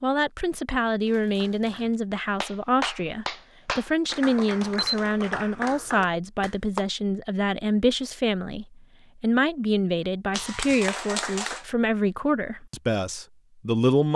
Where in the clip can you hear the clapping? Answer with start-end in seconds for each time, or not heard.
1.1-6.8, 10.3-11.7.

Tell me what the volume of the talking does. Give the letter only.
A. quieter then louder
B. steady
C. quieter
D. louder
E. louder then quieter
B.